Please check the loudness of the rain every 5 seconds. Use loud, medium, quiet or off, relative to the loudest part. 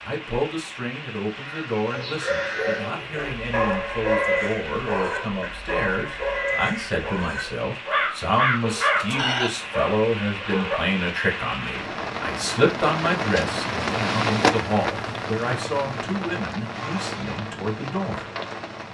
medium, medium, loud, medium.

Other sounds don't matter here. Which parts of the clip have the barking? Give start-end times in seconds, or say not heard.
1.9-10.8.